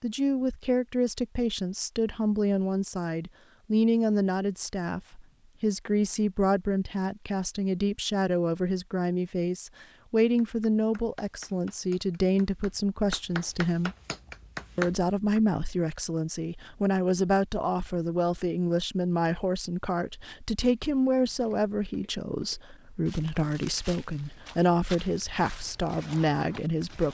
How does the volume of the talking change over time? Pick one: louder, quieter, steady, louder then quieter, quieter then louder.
steady.